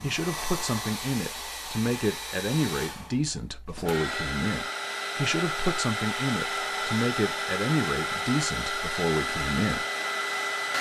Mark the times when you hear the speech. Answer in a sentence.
The speech can be heard from 0.0 to 9.8 s.